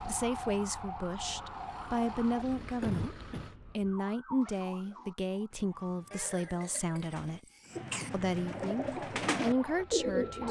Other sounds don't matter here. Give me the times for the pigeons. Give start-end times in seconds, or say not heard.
4.4-10.4.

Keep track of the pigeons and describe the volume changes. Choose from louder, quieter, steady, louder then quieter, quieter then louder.
louder.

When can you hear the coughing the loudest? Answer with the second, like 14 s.
3 s.